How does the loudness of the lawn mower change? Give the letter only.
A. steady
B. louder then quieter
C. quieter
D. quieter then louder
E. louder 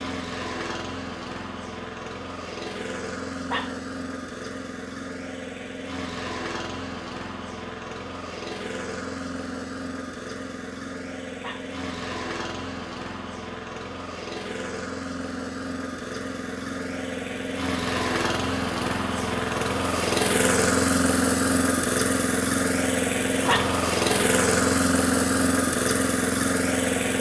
E.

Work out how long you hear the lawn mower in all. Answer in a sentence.
You can hear the lawn mower for 27 seconds altogether.